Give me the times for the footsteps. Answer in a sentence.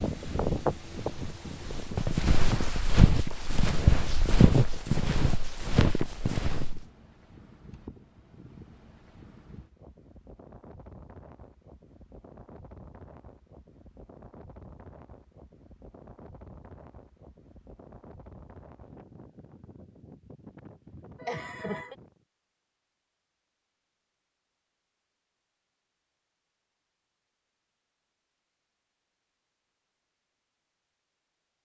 The footsteps can be heard from 0.1 to 6.8 s.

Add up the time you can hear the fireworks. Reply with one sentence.
You can't hear the fireworks here.